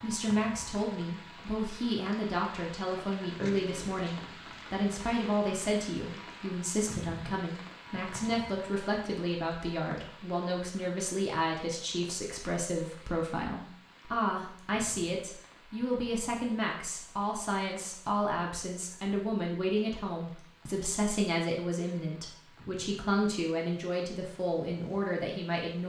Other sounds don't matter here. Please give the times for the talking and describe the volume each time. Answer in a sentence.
The talking can be heard from 0.0 to 25.8 s, at a steady volume.